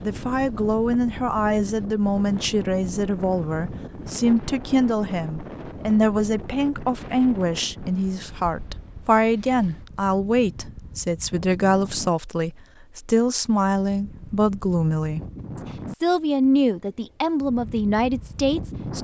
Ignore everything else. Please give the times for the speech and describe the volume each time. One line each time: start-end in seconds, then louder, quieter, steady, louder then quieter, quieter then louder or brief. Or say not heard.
0.0-15.2 steady
16.0-18.9 brief.